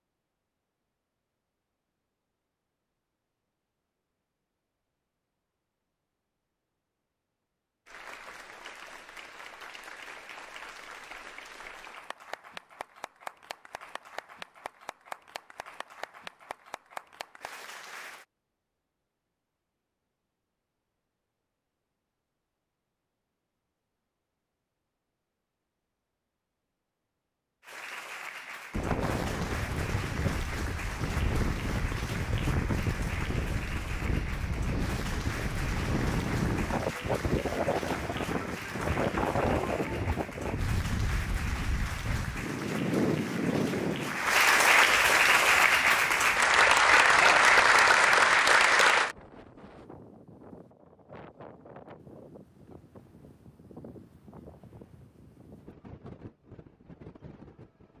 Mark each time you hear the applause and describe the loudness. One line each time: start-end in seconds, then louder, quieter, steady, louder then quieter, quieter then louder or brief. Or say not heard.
7.8-18.2 steady
27.6-49.1 louder.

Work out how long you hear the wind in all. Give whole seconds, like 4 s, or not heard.
29 s.